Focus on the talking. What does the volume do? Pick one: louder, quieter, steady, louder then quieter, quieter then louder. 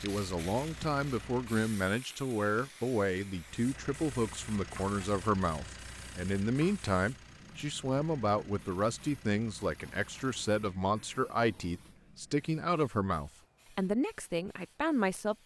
steady.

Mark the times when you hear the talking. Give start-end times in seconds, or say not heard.
0.0-15.4.